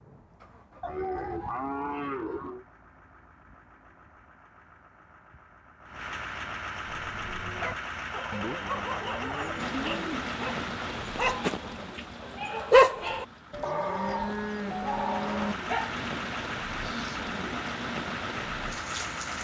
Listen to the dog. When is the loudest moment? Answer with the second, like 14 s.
13 s.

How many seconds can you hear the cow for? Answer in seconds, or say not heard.
6 s.